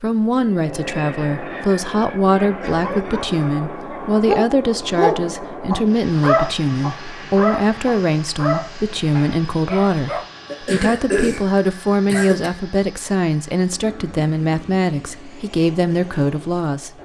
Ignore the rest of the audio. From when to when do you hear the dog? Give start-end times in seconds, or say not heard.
2.5-10.2.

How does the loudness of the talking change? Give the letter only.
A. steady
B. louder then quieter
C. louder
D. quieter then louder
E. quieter
A.